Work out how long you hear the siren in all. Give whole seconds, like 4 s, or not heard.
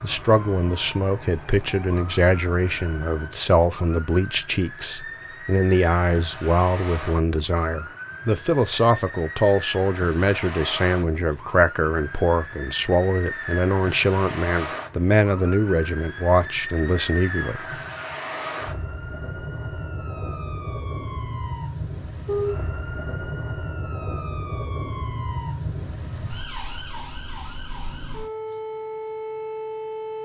30 s.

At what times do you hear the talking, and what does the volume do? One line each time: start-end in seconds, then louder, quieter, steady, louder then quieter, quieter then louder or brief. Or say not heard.
0.0-17.6 steady.